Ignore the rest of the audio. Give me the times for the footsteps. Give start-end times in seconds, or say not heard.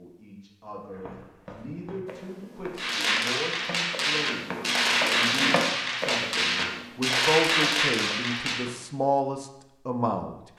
0.8-8.8.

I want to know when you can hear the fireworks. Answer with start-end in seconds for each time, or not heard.
2.8-8.7.